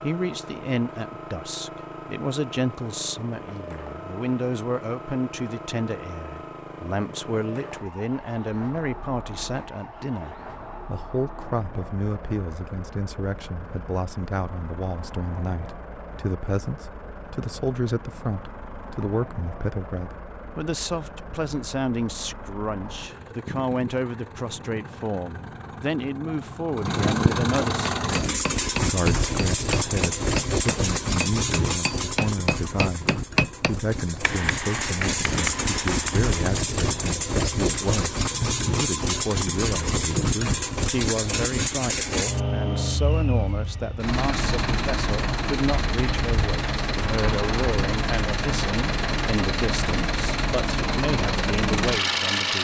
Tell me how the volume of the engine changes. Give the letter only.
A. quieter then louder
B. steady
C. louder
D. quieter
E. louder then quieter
C.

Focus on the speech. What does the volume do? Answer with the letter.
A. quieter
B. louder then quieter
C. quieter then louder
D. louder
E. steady
E.